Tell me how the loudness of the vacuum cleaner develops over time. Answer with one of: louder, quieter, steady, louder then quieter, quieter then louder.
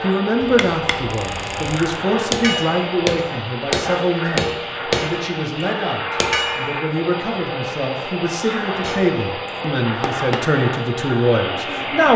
steady.